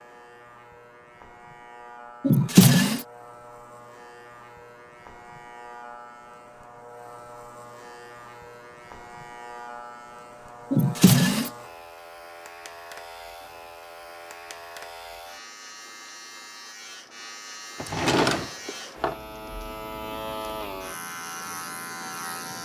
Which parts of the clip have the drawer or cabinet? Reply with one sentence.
The drawer or cabinet can be heard from 2.2 to 3.0 s, from 10.7 to 11.5 s and from 17.8 to 19.1 s.